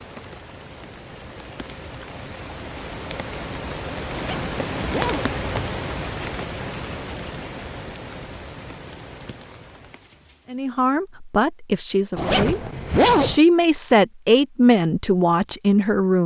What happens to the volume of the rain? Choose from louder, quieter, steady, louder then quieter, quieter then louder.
louder then quieter.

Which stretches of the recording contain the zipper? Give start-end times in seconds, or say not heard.
4.1-5.3, 12.2-13.4.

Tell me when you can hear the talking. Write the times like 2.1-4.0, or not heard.
10.5-16.2.